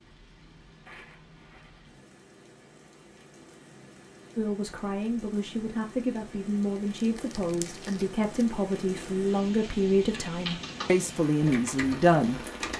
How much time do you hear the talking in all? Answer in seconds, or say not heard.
8 s.